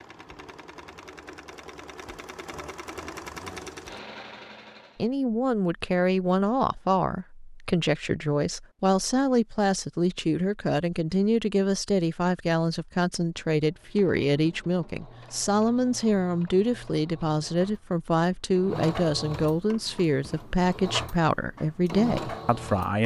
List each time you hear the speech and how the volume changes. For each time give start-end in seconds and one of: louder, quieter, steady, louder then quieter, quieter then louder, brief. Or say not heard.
5.0-23.0 steady.